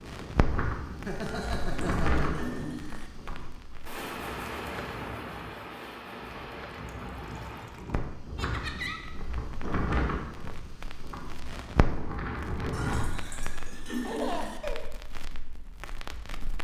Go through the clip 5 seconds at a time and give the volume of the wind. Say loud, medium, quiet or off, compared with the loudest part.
loud, loud, loud, off.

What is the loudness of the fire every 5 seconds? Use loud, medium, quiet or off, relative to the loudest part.
loud, loud, loud, medium.